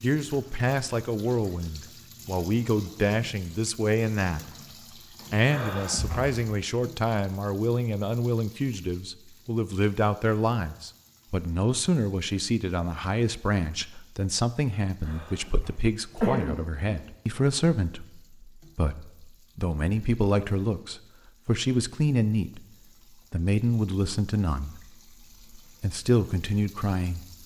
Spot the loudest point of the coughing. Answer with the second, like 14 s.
16 s.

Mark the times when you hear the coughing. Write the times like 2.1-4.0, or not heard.
5.5-6.3, 15.1-17.0.